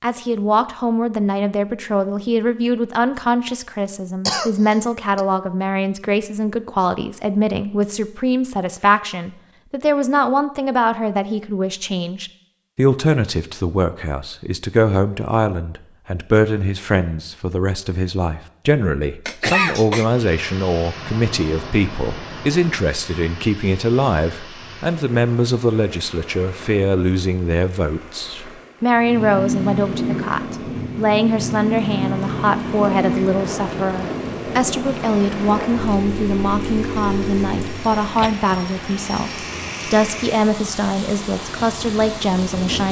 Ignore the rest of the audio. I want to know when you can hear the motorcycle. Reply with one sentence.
You can hear the motorcycle from 28.9 to 37.9 s.